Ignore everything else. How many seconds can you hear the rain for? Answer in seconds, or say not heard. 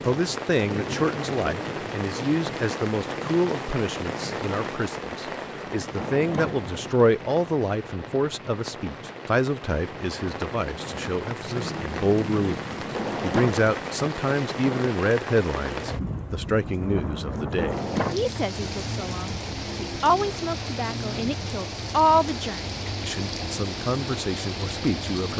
25 s.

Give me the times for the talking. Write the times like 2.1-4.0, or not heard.
0.1-12.6, 13.2-25.3.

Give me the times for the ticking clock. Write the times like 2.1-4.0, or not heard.
not heard.